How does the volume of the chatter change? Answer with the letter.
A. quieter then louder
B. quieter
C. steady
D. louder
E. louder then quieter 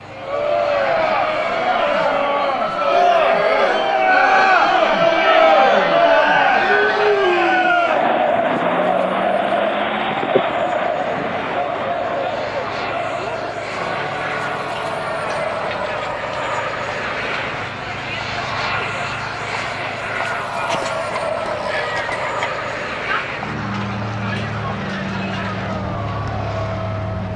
B.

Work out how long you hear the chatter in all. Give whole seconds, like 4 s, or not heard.
27 s.